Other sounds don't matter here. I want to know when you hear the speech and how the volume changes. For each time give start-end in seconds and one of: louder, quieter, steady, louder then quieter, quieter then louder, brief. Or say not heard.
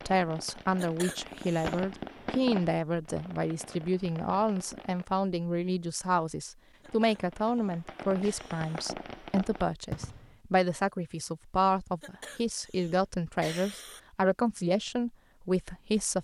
0.1-16.1 steady.